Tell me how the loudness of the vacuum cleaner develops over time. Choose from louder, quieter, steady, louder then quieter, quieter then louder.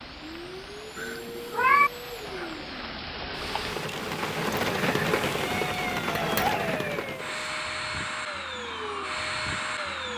louder.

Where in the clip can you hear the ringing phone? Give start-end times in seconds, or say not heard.
not heard.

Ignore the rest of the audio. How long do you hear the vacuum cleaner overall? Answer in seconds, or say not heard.
10 s.